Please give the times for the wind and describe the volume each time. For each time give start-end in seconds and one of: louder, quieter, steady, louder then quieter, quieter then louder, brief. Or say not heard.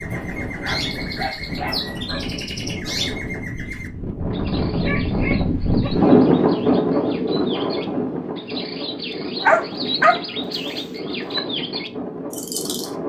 0.0-13.0 louder then quieter.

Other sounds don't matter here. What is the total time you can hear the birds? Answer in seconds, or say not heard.
13 s.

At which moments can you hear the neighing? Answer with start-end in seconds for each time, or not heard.
not heard.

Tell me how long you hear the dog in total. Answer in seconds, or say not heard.
5 s.